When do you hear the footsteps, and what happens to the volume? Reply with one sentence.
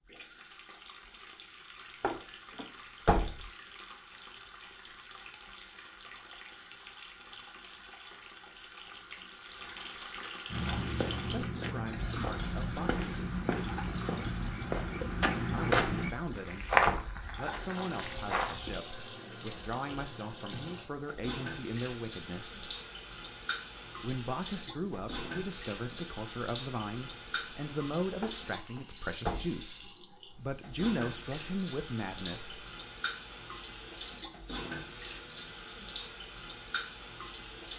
You can hear the footsteps from 10.5 to 18.9 s, getting louder then quieter.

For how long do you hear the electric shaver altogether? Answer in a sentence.
The electric shaver can't be heard in this clip.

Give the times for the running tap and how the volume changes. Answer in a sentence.
The running tap can be heard from 0.0 to 37.7 s, getting louder.